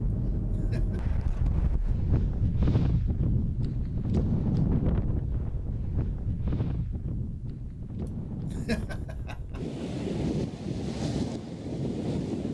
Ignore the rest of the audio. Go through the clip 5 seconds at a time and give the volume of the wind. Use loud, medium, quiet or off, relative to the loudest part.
loud, medium, loud.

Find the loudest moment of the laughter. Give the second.
9 s.